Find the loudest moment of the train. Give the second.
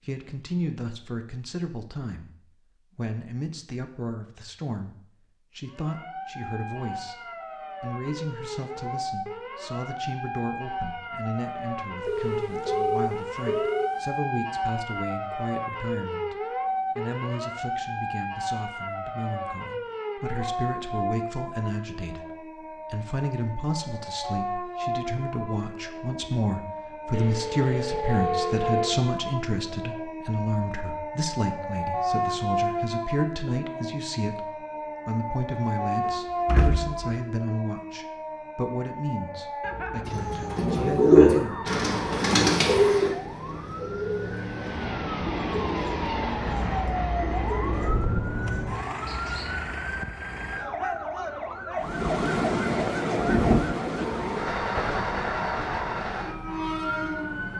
53 s.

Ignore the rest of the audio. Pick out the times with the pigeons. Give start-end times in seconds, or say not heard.
40.0-49.5.